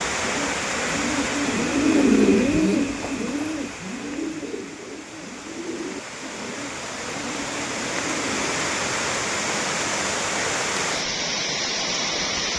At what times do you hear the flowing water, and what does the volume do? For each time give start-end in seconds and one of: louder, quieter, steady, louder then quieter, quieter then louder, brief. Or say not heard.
0.0-12.5 quieter then louder.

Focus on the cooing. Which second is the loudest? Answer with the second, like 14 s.
2 s.